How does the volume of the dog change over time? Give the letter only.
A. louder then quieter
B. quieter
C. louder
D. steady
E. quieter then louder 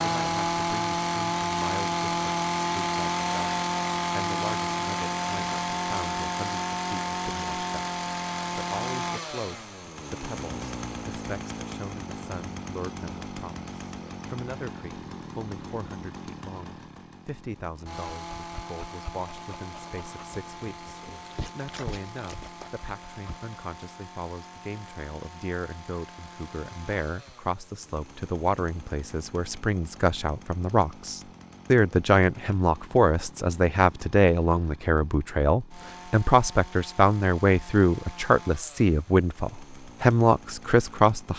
A.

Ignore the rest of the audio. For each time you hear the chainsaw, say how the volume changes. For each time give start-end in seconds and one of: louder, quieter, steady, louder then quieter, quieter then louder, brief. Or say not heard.
0.0-41.3 quieter.